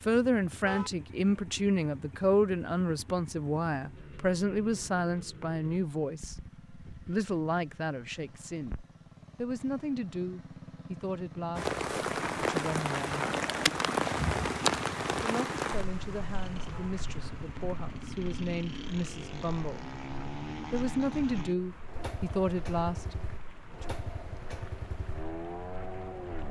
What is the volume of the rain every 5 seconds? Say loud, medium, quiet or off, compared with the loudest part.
off, off, loud, medium, quiet, quiet.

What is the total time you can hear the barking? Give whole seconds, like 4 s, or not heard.
not heard.